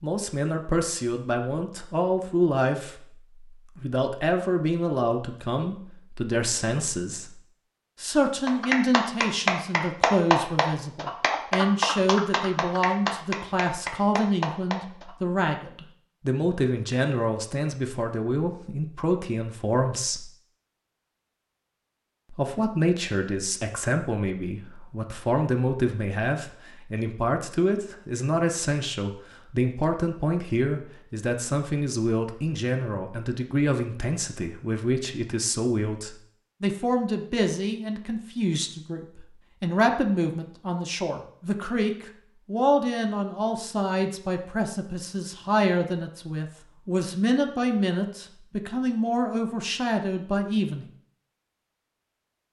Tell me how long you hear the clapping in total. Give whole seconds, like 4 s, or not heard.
7 s.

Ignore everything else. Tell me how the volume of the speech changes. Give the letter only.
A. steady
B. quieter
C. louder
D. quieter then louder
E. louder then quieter
A.